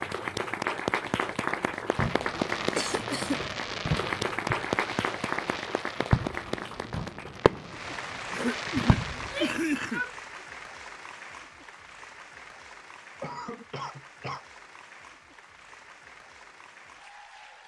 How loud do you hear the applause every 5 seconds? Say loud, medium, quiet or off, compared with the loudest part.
loud, medium, quiet, quiet.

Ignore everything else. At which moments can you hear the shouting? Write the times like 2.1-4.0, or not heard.
9.1-10.4.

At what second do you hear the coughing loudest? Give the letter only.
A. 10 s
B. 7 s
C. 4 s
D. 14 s
A.